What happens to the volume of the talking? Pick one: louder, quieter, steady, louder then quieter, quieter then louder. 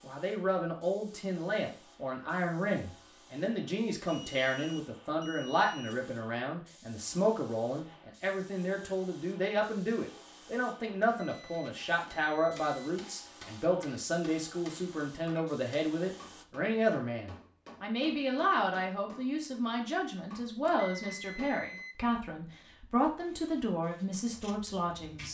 steady.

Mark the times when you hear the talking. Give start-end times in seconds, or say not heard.
0.0-25.2.